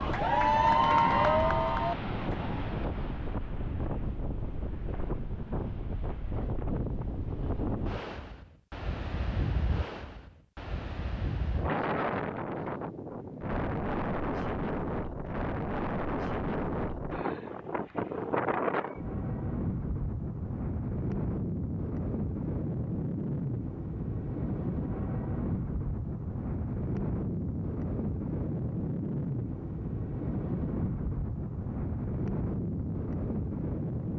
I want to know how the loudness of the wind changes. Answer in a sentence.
The volume of the wind stays about the same.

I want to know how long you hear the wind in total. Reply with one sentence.
The wind can be heard for 34 seconds in total.